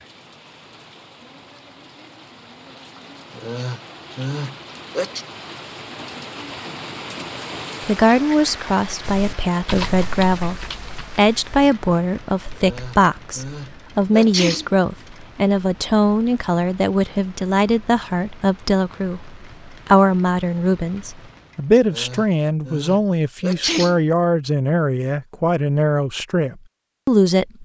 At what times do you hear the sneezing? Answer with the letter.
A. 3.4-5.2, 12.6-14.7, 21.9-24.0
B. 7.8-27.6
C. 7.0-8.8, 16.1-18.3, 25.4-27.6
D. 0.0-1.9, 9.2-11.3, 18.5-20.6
A.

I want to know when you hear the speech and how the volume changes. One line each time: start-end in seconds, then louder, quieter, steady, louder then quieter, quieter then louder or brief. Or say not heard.
7.8-27.6 steady.